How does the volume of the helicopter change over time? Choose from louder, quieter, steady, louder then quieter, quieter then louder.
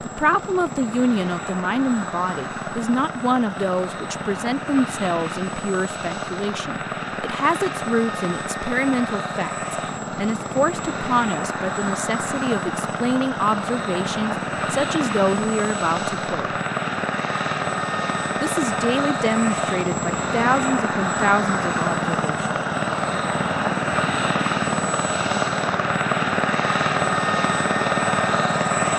louder.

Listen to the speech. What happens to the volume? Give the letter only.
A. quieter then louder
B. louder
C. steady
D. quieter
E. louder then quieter
C.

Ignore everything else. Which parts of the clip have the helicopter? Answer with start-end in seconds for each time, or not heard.
0.0-28.9.